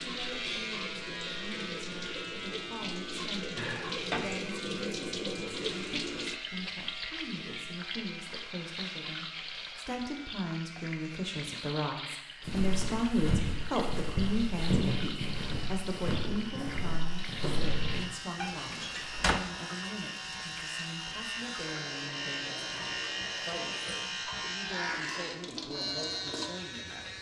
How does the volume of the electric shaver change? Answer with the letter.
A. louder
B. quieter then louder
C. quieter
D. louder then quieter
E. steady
B.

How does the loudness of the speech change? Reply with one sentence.
The loudness of the speech goes up, then down.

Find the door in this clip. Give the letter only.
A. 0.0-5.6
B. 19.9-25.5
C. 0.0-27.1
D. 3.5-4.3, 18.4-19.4
D.